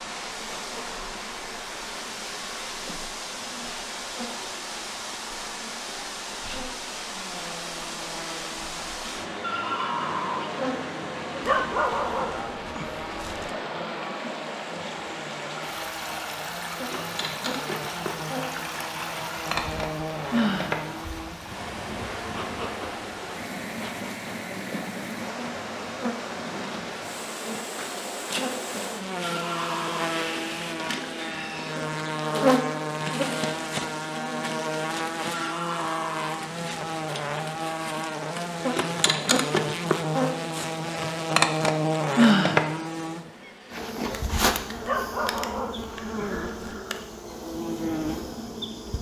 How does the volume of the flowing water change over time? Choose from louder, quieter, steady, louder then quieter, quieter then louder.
steady.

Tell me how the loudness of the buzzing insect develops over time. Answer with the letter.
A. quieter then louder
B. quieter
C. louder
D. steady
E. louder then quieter
C.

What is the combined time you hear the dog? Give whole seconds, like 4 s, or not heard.
4 s.